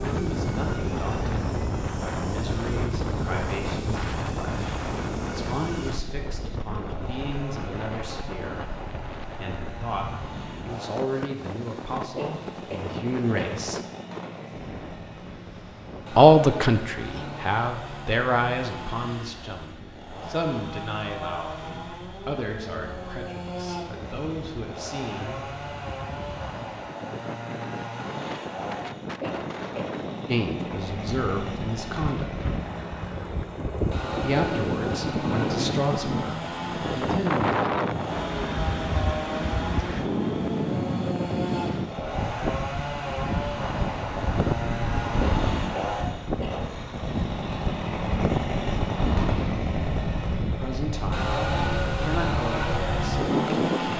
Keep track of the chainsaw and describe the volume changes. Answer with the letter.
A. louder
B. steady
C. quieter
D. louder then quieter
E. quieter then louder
A.